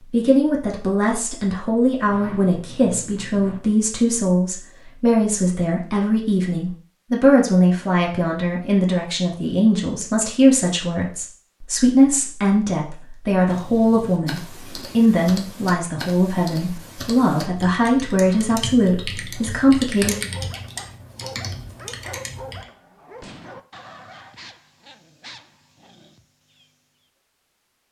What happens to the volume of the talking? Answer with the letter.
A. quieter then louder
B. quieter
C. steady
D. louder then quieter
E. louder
C.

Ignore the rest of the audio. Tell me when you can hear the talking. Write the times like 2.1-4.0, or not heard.
0.1-20.3.